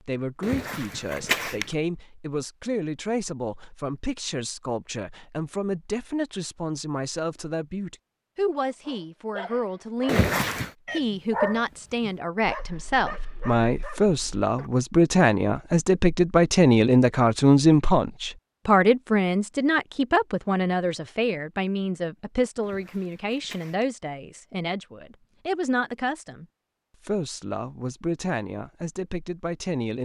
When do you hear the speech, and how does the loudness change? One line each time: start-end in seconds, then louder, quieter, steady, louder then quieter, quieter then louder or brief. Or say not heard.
0.1-30.0 louder then quieter.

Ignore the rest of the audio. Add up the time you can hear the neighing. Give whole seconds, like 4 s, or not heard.
3 s.